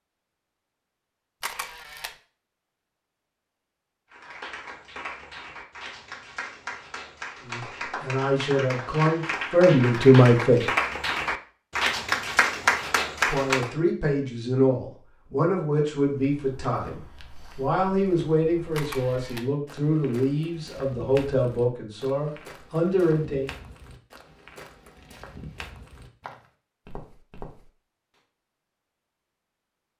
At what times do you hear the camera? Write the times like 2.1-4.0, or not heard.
1.4-2.1, 18.8-19.5.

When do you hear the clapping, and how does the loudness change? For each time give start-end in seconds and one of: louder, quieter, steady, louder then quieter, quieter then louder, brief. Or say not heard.
4.1-13.7 louder.